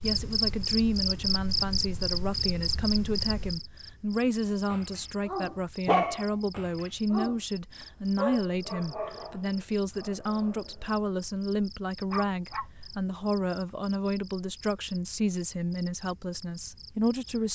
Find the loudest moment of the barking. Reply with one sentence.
The loudest moment of the barking is at 6 seconds.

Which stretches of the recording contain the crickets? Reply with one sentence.
The crickets can be heard from 0.0 to 17.5 s.